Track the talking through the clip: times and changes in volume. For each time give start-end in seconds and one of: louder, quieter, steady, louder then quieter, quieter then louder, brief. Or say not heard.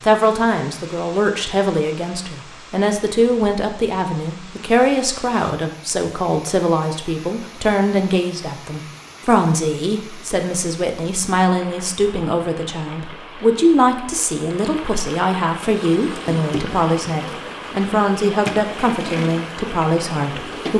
0.0-20.7 steady.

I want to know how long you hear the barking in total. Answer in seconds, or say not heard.
not heard.